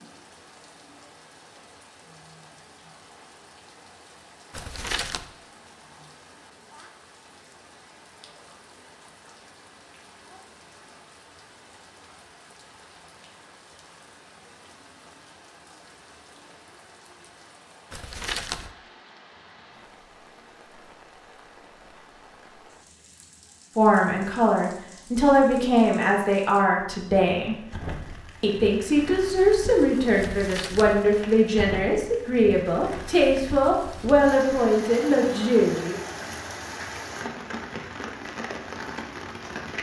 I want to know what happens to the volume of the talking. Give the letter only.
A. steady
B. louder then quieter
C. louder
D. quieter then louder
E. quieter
A.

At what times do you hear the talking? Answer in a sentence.
The talking can be heard from 23.8 to 27.6 s and from 28.4 to 36.0 s.